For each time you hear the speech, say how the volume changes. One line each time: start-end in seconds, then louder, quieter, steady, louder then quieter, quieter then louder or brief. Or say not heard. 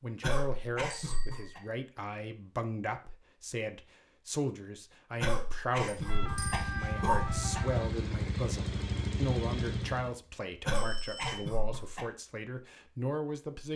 0.0-13.7 steady.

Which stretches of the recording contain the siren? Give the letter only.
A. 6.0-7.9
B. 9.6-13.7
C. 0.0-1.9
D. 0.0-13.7
A.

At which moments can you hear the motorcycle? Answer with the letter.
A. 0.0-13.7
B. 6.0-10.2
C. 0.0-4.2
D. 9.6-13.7
B.